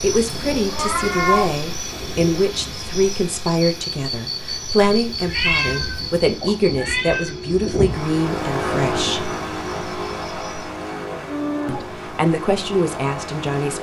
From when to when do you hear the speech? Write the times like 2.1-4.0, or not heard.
0.0-9.3, 11.7-13.7.